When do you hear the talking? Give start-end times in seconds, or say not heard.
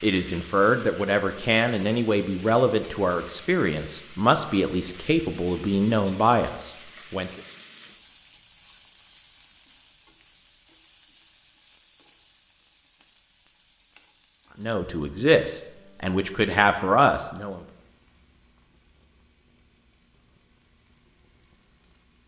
0.0-7.4, 14.6-17.6.